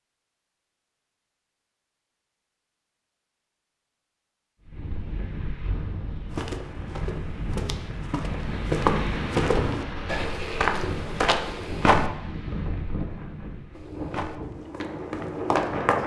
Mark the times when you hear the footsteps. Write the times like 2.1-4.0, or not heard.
6.3-12.1, 13.8-16.0.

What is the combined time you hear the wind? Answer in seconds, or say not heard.
11 s.